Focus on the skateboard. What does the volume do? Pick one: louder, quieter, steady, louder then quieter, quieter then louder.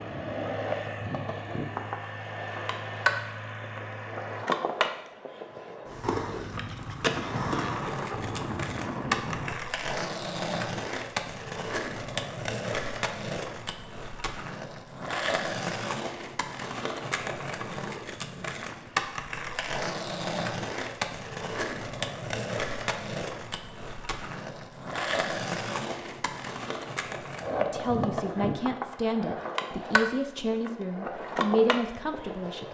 steady.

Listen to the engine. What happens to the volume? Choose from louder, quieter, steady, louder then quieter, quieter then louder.
steady.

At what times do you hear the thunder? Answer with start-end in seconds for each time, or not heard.
6.5-9.7.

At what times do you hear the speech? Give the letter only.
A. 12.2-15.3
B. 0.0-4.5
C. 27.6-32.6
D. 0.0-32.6
C.